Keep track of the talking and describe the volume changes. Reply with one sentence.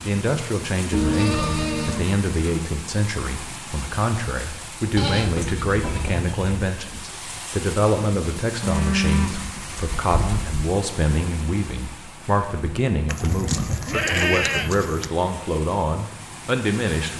The volume of the talking stays about the same.